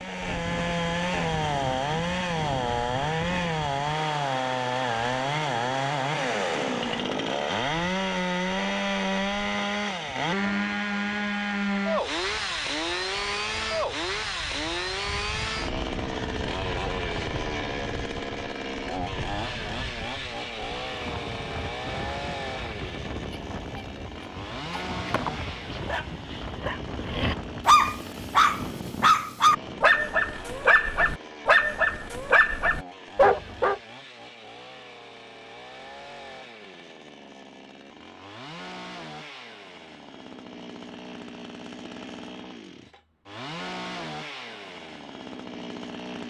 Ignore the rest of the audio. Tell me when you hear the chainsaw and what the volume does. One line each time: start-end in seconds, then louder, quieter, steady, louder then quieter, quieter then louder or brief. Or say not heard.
0.0-46.2 quieter.